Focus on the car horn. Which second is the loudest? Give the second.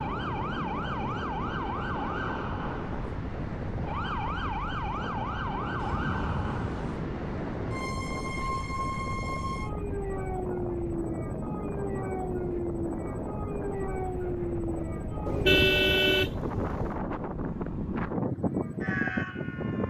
16 s.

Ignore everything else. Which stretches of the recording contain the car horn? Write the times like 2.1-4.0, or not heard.
5.8-7.0, 15.2-17.0.